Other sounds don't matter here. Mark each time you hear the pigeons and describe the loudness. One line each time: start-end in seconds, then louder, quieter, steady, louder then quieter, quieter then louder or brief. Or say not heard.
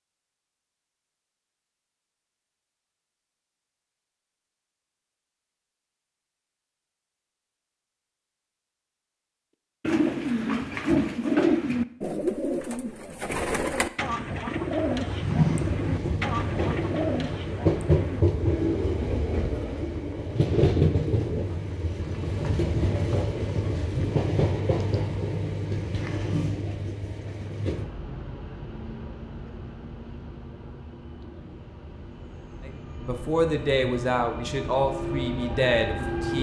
9.8-20.8 quieter.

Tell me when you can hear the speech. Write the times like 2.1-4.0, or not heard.
32.6-36.3.